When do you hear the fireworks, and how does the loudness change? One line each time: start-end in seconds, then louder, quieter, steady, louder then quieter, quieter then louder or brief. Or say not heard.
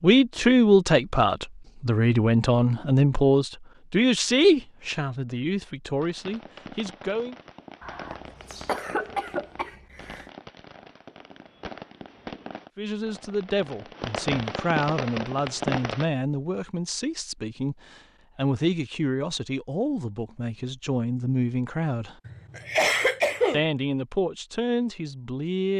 6.0-16.1 louder.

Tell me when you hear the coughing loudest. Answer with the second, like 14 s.
23 s.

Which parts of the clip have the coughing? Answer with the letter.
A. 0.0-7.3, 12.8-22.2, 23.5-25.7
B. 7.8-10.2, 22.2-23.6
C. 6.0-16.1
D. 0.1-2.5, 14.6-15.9
B.